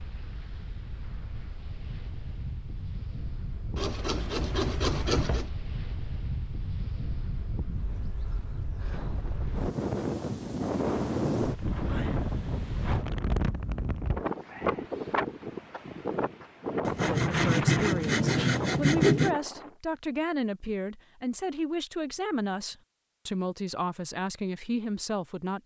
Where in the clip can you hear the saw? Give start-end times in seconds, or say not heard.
3.8-5.5, 16.9-19.4.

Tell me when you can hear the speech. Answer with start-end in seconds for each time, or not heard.
17.2-25.6.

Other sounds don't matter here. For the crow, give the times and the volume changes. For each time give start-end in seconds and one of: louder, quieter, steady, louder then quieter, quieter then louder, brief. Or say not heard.
not heard.